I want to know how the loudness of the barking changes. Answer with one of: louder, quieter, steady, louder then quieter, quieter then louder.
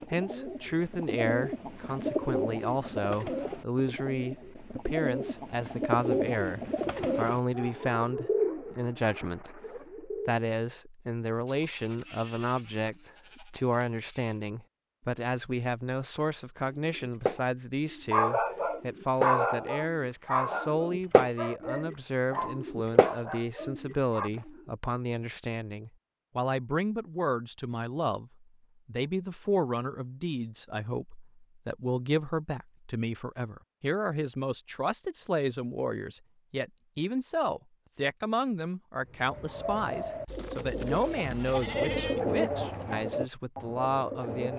quieter.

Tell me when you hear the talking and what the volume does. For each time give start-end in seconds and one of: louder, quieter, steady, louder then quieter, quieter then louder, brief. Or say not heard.
0.1-44.5 steady.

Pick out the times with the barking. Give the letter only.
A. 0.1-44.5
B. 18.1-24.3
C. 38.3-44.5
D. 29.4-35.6
B.